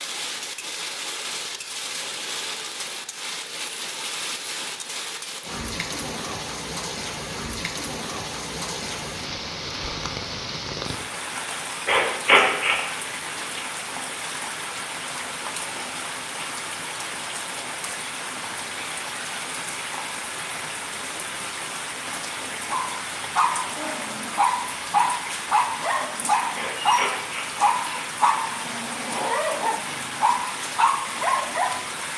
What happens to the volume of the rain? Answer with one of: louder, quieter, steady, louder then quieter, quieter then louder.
steady.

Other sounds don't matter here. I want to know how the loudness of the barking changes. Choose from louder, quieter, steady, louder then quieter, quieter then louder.
steady.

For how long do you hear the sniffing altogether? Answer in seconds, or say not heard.
2 s.